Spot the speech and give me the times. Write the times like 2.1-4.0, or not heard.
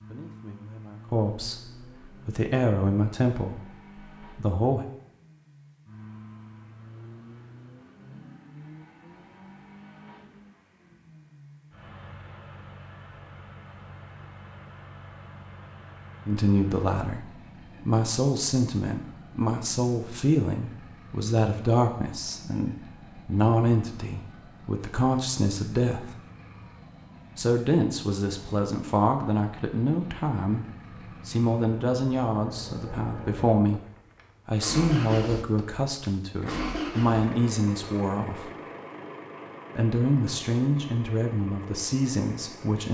0.1-4.8, 16.2-26.1, 27.4-30.6, 31.2-33.8, 34.5-38.5, 39.8-42.8.